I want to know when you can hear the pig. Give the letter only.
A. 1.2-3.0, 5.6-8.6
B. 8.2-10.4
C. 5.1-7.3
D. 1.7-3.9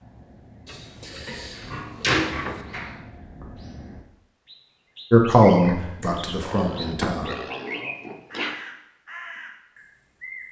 A.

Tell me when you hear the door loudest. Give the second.
2 s.